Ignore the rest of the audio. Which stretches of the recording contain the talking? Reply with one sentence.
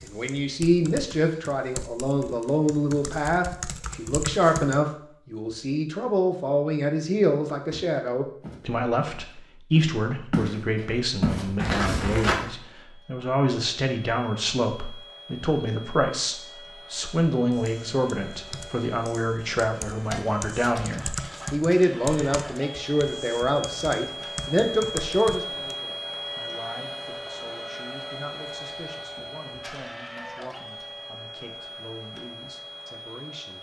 The talking can be heard from 0.0 to 33.5 s.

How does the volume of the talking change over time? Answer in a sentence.
The loudness of the talking goes down.